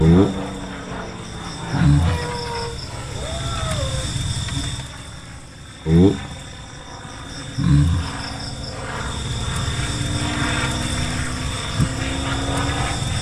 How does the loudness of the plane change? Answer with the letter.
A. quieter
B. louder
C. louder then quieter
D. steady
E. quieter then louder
E.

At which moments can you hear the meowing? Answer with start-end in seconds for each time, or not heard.
2.0-4.1.